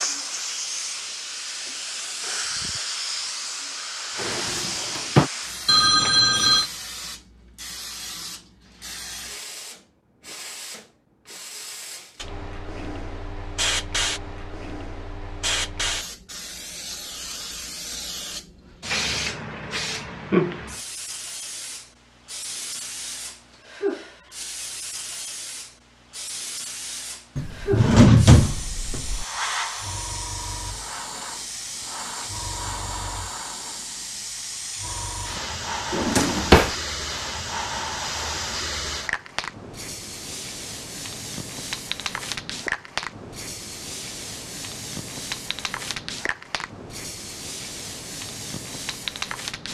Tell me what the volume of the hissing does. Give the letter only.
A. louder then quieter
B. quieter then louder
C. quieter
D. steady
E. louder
D.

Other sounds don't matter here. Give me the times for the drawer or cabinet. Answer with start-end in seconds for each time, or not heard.
4.2-5.3, 27.4-29.2, 35.9-36.8.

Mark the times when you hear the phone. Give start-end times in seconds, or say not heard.
5.7-6.7.